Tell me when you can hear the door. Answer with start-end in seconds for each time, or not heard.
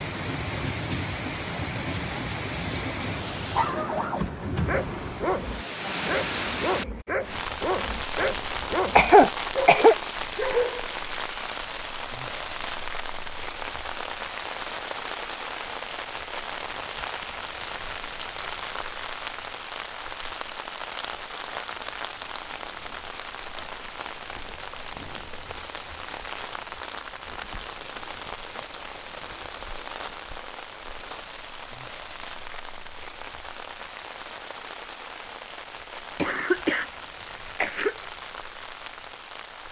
not heard.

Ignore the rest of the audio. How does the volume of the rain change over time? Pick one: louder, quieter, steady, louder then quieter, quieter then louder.
quieter.